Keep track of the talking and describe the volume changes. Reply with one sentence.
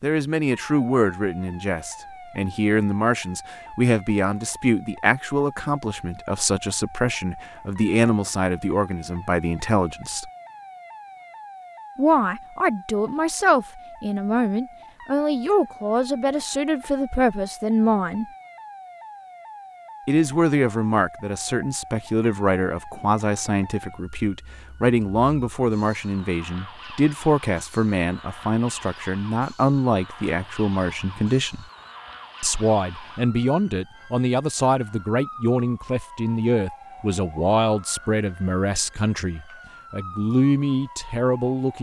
The loudness of the talking stays about the same.